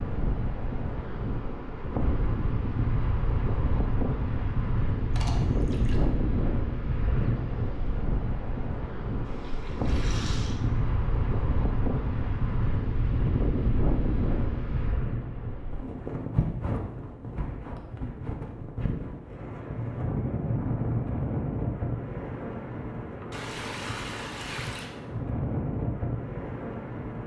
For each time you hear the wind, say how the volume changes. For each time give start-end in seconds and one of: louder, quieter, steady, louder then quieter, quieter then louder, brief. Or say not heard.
0.0-27.2 steady.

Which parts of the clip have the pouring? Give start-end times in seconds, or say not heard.
5.1-6.0, 9.2-10.6, 23.3-24.9.